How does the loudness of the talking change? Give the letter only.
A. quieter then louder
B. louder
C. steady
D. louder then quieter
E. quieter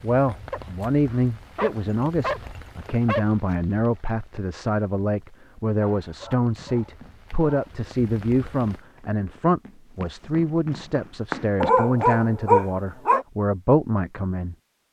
C.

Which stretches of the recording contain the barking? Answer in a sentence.
You can hear the barking from 0.5 to 3.3 s, from 5.8 to 7.5 s and from 11.6 to 13.2 s.